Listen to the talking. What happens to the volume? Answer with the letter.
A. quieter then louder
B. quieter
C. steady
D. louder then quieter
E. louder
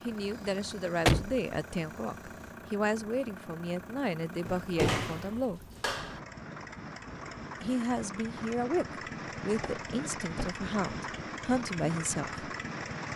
C.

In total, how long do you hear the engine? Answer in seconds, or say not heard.
13 s.